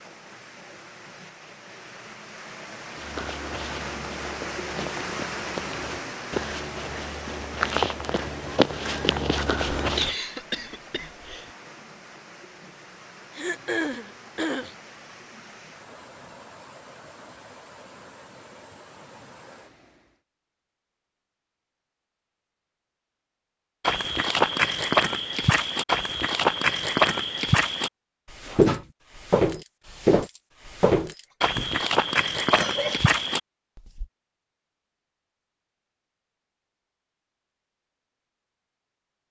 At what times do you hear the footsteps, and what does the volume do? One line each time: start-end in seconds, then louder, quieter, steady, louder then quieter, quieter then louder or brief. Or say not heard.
3.0-10.2 louder
23.8-34.0 steady.